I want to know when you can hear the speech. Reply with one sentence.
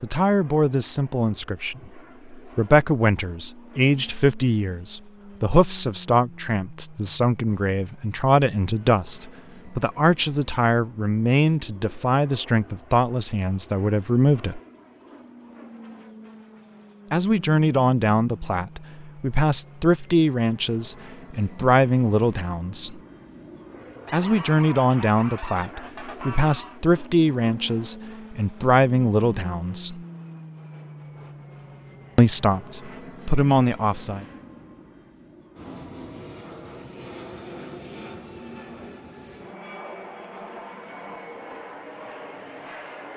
You can hear the speech from 0.0 to 14.6 s, from 17.1 to 23.0 s, from 24.1 to 30.0 s and from 32.1 to 34.2 s.